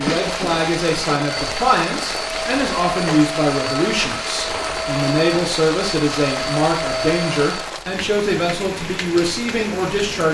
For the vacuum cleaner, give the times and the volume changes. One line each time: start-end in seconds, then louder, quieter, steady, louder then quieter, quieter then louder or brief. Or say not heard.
0.0-7.8 steady.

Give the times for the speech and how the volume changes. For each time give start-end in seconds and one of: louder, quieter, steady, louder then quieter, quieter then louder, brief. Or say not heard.
0.0-10.3 steady.